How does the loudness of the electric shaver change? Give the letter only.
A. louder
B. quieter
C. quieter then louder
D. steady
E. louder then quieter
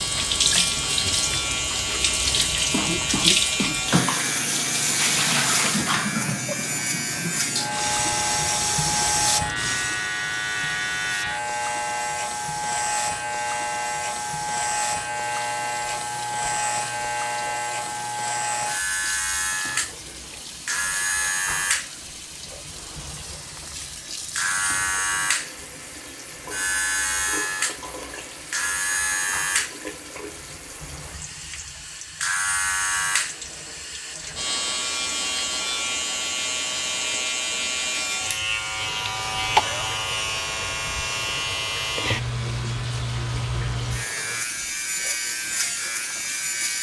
D.